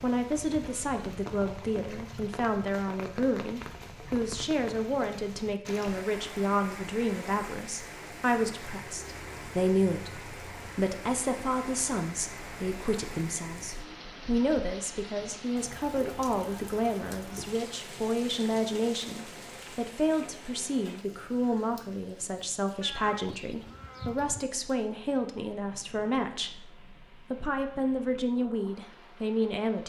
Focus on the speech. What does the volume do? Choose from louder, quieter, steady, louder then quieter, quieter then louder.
steady.